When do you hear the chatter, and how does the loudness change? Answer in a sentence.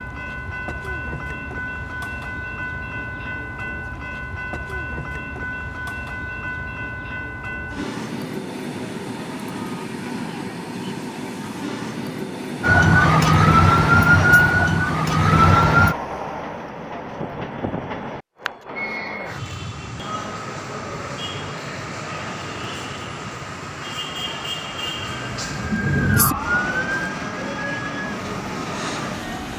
The chatter can't be heard in this clip.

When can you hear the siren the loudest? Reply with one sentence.
The loudest moment of the siren is at 14 seconds.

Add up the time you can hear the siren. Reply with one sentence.
You can hear the siren for 8 seconds altogether.